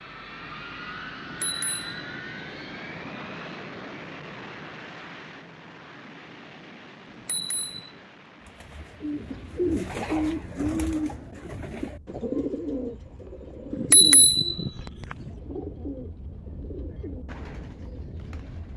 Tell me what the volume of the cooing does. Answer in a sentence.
The loudness of the cooing goes down.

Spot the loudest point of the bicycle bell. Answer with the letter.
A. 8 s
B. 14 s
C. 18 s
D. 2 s
B.